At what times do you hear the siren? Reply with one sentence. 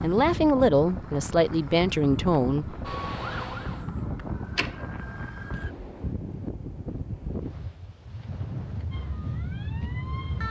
The siren can be heard from 2.8 to 5.8 s and from 8.9 to 10.4 s.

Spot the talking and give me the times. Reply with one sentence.
You can hear the talking from 0.0 to 3.0 s.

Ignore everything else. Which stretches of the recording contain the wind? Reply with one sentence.
You can hear the wind from 0.0 to 10.4 s.